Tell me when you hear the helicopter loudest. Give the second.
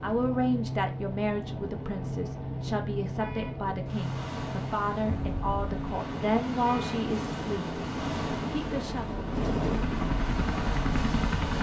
10 s.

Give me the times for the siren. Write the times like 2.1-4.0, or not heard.
not heard.